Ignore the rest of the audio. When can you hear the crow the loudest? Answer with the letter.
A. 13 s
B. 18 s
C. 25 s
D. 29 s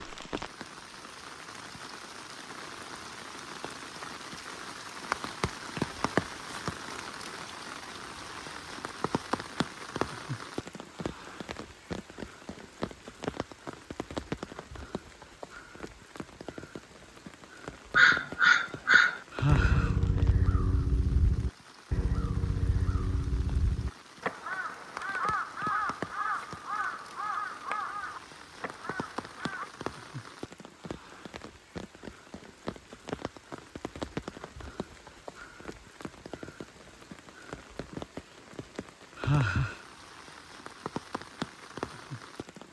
B.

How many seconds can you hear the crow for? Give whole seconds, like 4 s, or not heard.
12 s.